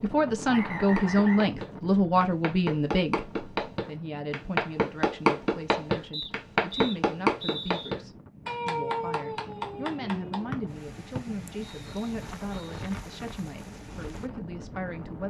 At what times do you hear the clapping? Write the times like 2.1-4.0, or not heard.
0.8-10.4.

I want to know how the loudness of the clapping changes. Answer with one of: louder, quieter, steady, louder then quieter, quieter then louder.
louder then quieter.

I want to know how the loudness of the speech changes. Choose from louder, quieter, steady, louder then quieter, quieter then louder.
quieter.